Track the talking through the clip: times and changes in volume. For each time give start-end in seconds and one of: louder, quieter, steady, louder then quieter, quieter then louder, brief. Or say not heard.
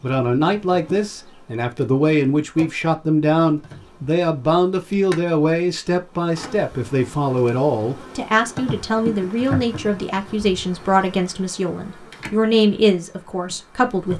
0.0-14.1 steady.